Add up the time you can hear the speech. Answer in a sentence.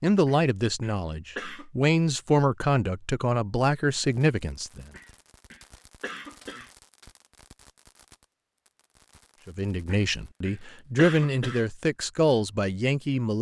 The speech can be heard for 9 seconds in total.